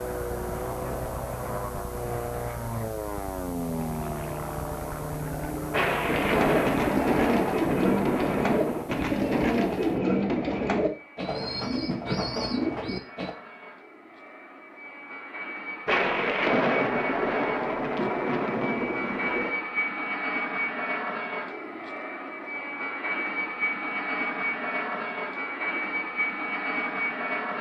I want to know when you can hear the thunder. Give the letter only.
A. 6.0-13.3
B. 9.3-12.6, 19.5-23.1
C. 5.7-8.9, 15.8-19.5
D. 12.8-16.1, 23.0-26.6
C.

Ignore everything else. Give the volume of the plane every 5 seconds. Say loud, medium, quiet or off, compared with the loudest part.
loud, medium, quiet, loud, loud, loud.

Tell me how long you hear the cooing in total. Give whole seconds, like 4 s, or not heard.
7 s.